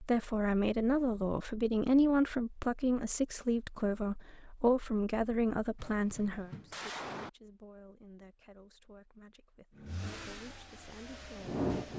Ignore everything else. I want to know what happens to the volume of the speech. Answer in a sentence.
The loudness of the speech goes down.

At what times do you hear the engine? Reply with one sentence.
The engine can be heard from 9.8 to 11.9 s.